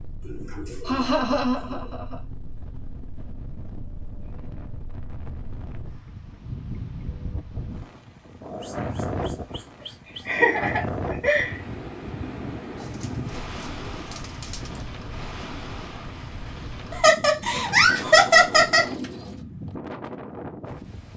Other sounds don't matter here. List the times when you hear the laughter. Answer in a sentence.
You can hear the laughter from 0.8 to 2.1 s, from 10.2 to 11.6 s and from 16.9 to 18.9 s.